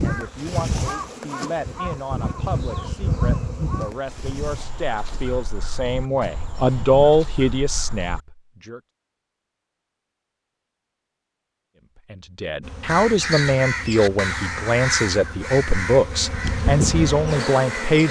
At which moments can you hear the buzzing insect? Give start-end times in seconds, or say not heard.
0.0-7.0, 12.6-18.0.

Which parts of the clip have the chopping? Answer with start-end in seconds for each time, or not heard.
not heard.